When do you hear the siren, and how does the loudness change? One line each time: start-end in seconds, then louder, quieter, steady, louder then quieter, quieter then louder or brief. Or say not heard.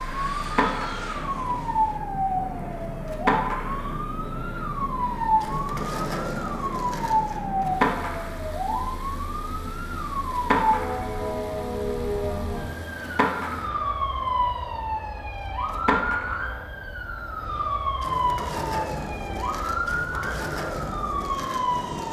0.0-22.0 steady.